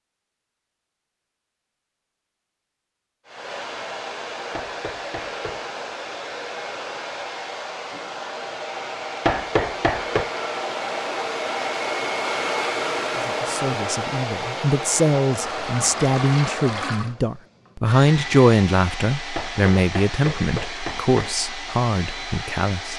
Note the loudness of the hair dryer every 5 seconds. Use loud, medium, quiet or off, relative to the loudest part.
medium, medium, loud, medium, medium.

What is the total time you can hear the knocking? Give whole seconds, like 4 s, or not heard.
4 s.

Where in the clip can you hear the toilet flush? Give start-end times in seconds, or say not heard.
15.3-17.1.